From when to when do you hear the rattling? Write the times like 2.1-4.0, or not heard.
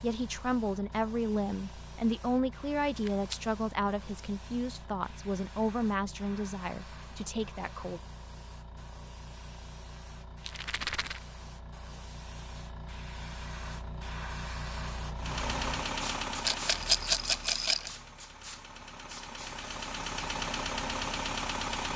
2.9-3.4, 10.4-11.2, 16.4-17.9.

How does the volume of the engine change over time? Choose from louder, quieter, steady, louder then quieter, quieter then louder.
quieter then louder.